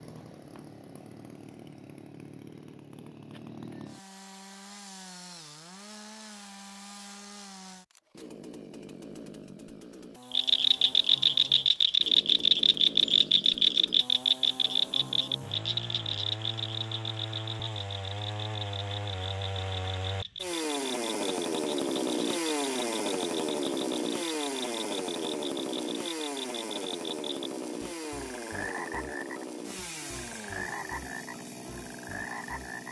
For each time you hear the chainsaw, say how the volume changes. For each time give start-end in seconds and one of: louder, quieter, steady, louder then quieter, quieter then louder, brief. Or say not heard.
0.0-32.8 louder then quieter.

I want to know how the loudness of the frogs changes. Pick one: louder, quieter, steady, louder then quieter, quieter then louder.
quieter.